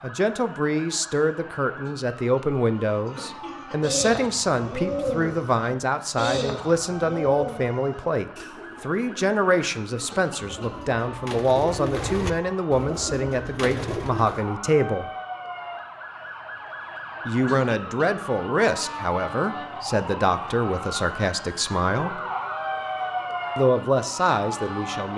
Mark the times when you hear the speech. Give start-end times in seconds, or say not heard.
0.0-15.1, 17.2-22.2, 23.6-25.1.